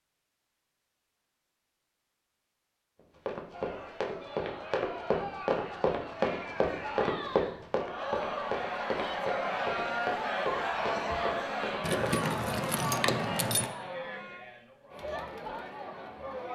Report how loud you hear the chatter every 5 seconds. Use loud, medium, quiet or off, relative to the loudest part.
medium, loud, loud, medium.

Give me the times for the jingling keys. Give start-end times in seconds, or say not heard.
11.8-13.7.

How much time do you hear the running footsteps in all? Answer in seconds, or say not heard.
9 s.